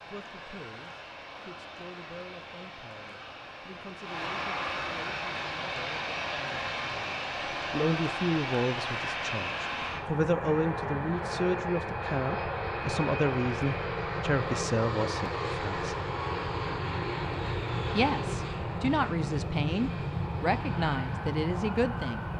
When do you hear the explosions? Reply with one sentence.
You can't hear the explosions here.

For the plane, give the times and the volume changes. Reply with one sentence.
You can hear the plane from 0.0 to 22.3 s, getting louder.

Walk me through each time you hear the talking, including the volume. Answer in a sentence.
You can hear the talking from 0.0 to 15.9 s, getting louder; and from 17.9 to 22.2 s, at a steady volume.